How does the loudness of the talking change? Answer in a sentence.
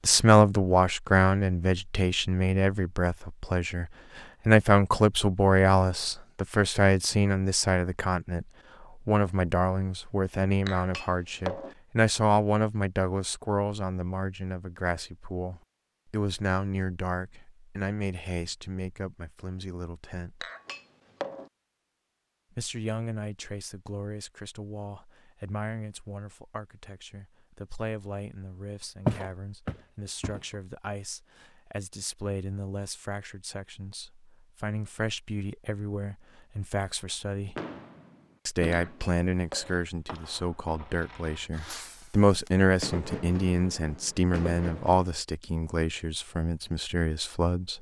The volume of the talking goes down, then up.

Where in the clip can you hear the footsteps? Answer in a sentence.
The footsteps can be heard from 29.1 to 30.4 s.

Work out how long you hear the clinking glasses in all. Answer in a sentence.
The clinking glasses can be heard for 3 seconds in total.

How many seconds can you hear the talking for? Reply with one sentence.
You can hear the talking for 44 seconds altogether.